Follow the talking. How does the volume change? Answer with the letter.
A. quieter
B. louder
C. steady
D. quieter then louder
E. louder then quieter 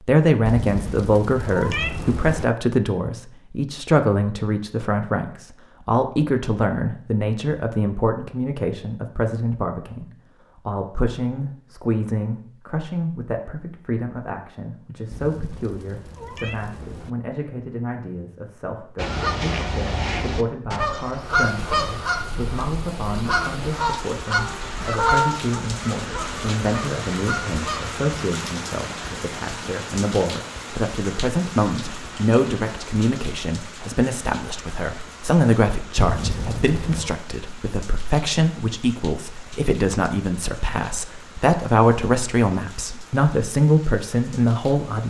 D.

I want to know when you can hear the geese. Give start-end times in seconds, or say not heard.
18.9-27.9.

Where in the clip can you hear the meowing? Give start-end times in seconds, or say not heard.
0.5-2.5, 15.1-17.1, 36.0-37.1.